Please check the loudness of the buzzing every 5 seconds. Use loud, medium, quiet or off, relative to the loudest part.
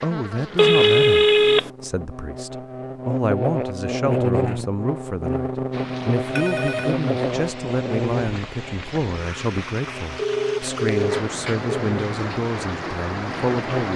loud, loud, medium.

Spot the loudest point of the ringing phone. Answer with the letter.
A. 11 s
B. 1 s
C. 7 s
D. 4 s
B.